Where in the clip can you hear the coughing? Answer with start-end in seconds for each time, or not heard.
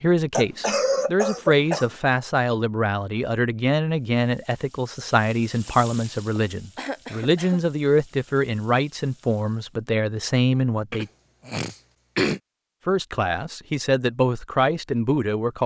0.3-1.9, 6.3-7.6, 10.9-12.4.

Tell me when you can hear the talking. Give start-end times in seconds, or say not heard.
0.0-11.1, 12.8-15.6.